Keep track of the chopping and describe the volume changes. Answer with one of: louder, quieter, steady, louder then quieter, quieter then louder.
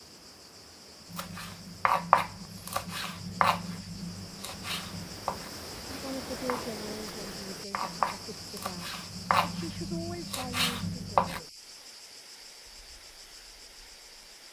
quieter then louder.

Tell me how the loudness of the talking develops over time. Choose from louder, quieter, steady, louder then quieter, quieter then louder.
quieter then louder.